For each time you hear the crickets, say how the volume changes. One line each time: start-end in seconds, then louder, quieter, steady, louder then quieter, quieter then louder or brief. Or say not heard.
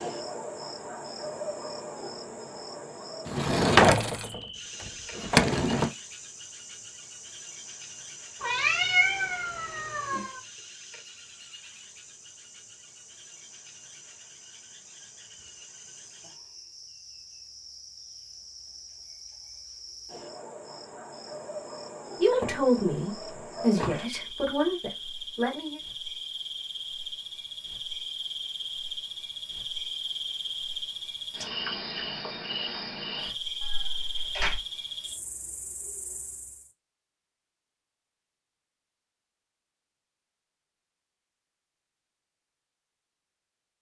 0.0-36.7 quieter then louder.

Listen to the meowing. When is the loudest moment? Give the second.
9 s.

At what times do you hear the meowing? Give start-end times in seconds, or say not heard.
8.4-10.4, 33.6-34.6.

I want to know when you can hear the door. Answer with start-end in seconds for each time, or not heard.
3.2-5.9, 22.4-24.0.